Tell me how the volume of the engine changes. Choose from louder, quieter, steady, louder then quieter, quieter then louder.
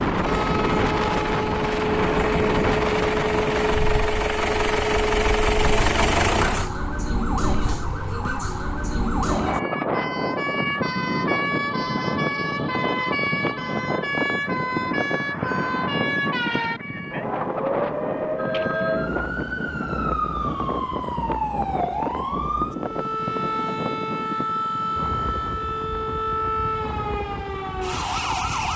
louder.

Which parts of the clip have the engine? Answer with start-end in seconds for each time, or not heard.
0.0-6.7.